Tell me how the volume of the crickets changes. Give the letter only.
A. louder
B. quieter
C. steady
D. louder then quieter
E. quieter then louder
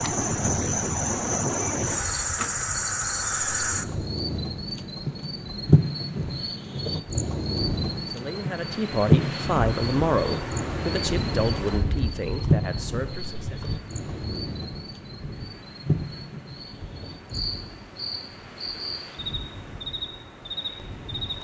B.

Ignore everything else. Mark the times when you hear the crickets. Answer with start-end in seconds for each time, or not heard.
0.0-21.3.